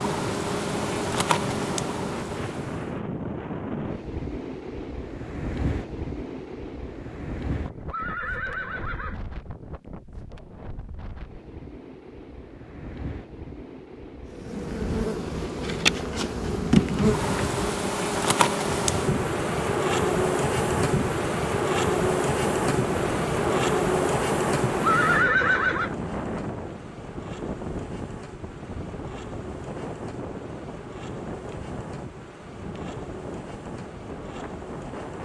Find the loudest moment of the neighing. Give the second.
25 s.